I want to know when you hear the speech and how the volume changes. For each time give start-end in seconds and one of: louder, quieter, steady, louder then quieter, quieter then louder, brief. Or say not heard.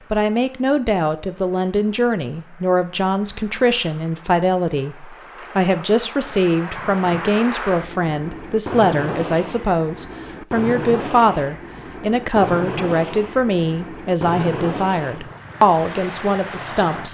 0.1-17.0 steady.